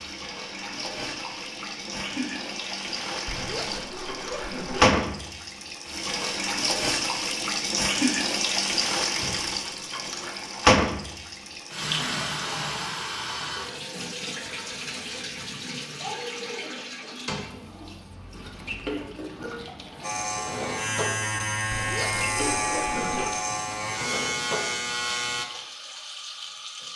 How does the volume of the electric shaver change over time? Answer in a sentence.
The loudness of the electric shaver stays about the same.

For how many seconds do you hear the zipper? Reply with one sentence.
You can hear the zipper for 3 seconds altogether.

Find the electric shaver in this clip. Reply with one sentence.
You can hear the electric shaver from 20.0 to 25.4 s.